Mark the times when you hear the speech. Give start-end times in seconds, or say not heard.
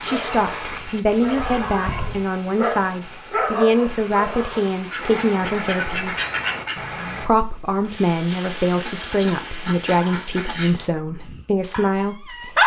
0.0-6.2, 7.2-12.6.